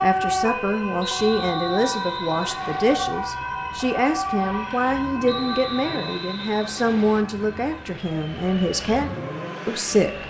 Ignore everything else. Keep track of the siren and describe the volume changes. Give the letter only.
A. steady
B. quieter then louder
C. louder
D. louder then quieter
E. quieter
E.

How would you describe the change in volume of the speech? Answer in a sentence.
The volume of the speech stays about the same.